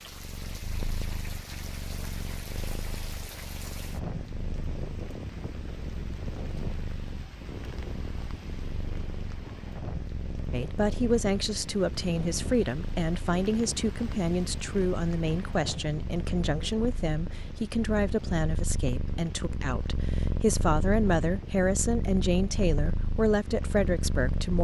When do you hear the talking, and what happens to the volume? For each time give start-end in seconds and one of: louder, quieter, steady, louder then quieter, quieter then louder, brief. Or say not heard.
10.5-24.5 steady.